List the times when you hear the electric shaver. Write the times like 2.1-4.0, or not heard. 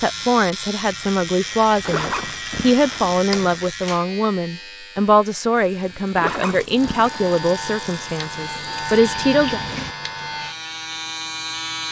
0.0-11.8.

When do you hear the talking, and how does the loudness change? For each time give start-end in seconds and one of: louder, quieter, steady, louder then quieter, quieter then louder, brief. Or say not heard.
0.0-9.6 steady.